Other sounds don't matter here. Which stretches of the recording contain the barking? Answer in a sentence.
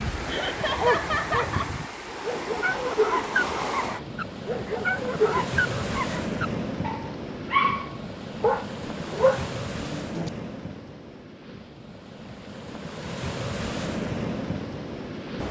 You can hear the barking from 0.6 to 10.3 s.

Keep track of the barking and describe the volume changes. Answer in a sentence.
The volume of the barking goes up.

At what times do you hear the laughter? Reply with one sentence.
You can hear the laughter from 0.2 to 1.7 s.